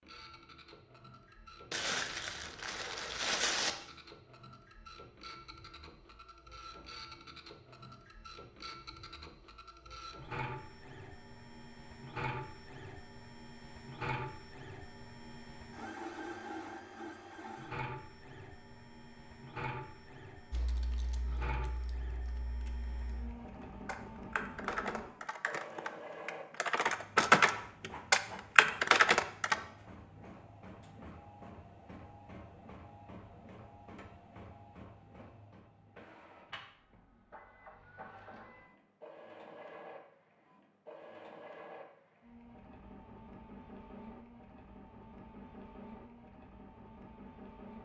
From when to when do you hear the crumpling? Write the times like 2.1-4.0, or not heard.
1.7-3.8.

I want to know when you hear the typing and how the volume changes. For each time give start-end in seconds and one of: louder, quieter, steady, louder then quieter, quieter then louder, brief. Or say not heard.
20.5-29.6 louder.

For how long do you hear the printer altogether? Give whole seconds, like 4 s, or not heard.
48 s.